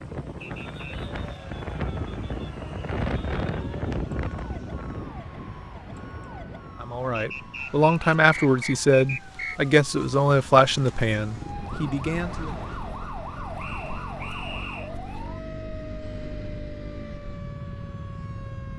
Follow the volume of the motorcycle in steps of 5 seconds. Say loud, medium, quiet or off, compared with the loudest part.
off, off, loud, loud.